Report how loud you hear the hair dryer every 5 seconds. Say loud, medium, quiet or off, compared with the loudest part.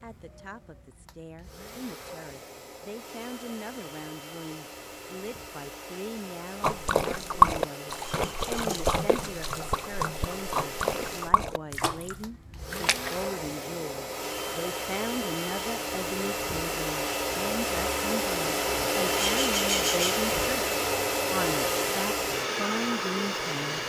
quiet, quiet, medium, loud, loud.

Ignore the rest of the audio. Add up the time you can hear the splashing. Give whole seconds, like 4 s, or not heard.
7 s.